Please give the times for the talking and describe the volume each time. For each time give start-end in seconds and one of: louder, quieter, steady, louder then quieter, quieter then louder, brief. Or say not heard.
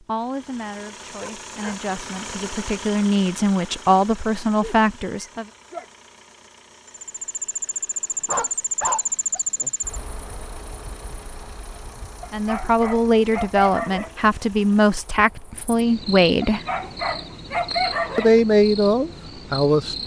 0.0-5.5 louder
12.3-16.6 steady
18.1-19.9 brief.